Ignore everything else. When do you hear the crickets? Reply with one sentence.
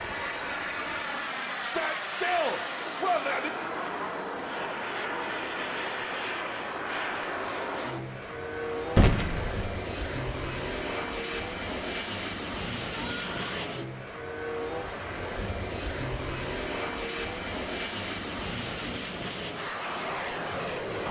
You can't hear the crickets here.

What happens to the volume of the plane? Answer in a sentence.
The loudness of the plane stays about the same.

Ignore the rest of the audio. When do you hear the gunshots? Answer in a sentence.
You can hear the gunshots from 8.9 to 9.7 s.